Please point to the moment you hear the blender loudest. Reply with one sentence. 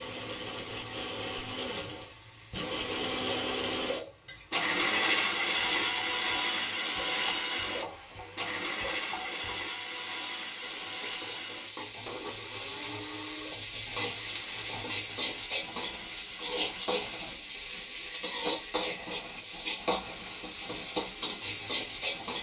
The loudest moment of the blender is at 5 seconds.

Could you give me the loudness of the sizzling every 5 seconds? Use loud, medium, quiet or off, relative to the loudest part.
quiet, quiet, loud, loud, loud.